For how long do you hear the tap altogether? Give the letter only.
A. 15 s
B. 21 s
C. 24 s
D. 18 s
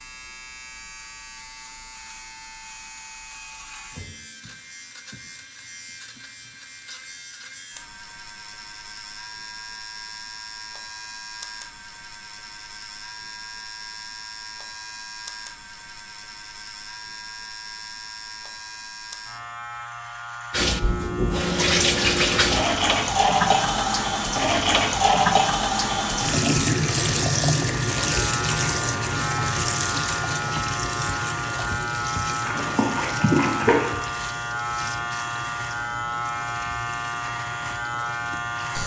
D.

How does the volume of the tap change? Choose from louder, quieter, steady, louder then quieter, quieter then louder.
quieter.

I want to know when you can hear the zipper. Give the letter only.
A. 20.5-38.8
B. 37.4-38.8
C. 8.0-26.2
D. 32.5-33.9
D.